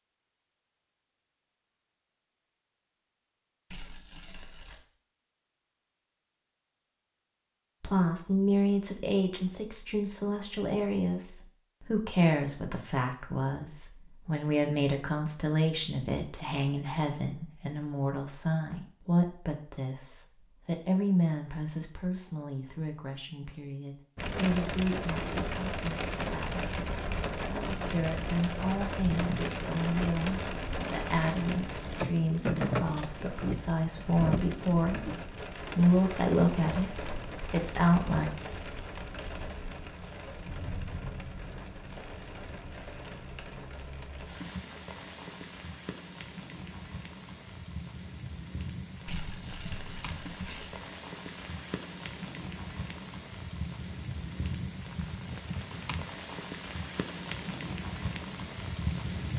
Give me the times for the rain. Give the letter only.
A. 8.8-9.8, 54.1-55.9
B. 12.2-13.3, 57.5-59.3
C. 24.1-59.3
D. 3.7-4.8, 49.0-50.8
C.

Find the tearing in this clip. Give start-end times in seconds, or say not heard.
3.7-4.8, 49.0-50.8.